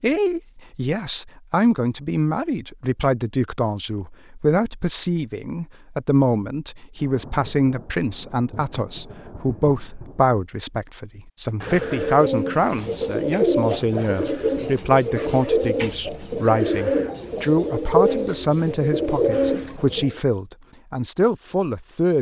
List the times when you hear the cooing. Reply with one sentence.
The cooing can be heard from 11.6 to 20.2 s.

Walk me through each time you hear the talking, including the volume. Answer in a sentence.
You can hear the talking from 0.0 to 22.1 s, at a steady volume.